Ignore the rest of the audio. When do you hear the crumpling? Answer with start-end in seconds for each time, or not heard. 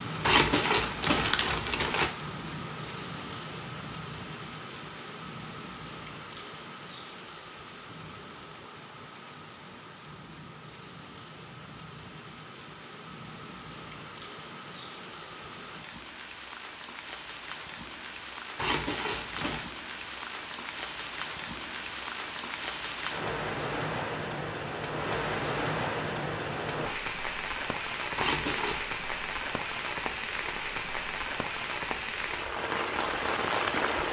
0.2-2.1, 18.6-19.7, 28.1-28.9.